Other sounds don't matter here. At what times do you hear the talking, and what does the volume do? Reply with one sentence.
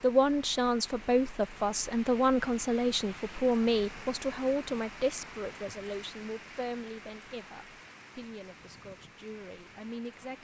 The talking can be heard from 0.0 to 10.3 s, getting quieter.